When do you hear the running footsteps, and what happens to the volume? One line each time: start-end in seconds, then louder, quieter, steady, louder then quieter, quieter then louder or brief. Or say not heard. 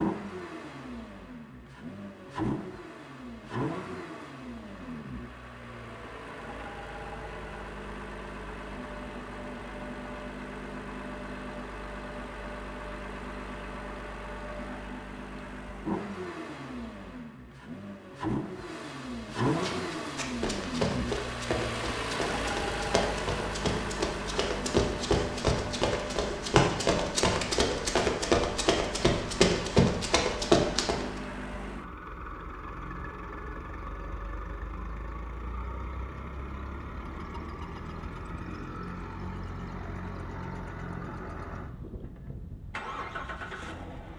19.6-31.1 louder.